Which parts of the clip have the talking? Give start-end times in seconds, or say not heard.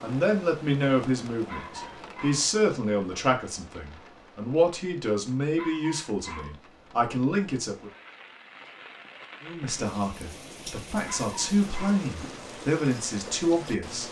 0.0-7.9, 9.4-14.0.